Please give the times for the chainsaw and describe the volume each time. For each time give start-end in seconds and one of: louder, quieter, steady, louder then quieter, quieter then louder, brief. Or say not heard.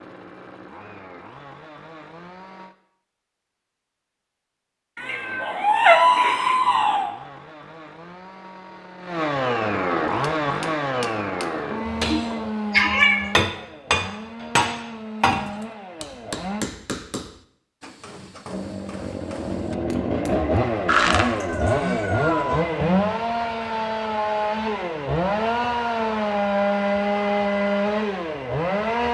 0.0-2.8 brief
5.0-16.6 louder then quieter
18.4-29.0 steady.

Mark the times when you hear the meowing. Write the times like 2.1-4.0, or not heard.
5.0-7.1, 11.8-13.3, 20.9-22.6.